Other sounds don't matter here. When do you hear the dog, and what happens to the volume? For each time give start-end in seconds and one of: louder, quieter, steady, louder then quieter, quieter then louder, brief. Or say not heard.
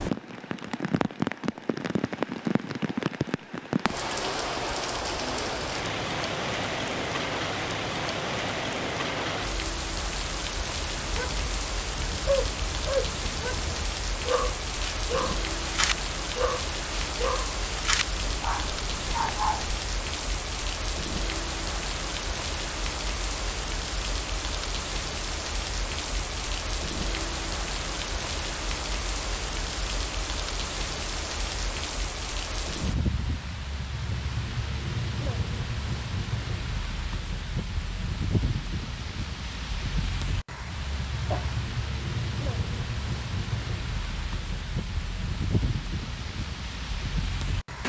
10.9-19.8 steady.